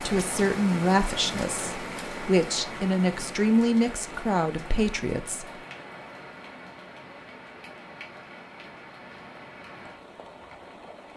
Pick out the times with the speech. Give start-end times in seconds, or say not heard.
0.0-5.5.